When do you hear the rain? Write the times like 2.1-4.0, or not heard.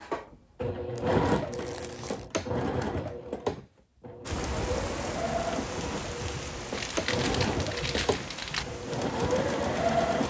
4.2-10.2.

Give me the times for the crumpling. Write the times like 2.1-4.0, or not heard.
0.9-2.3, 6.7-8.7.